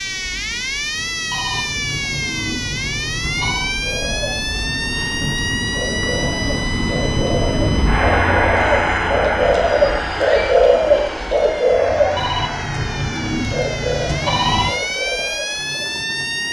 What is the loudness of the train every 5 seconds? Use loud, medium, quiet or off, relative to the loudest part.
quiet, loud, medium, quiet.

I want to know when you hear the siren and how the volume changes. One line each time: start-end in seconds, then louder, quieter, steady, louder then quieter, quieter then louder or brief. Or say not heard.
0.0-16.4 quieter then louder.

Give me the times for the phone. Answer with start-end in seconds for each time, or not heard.
1.3-3.8, 12.2-14.8.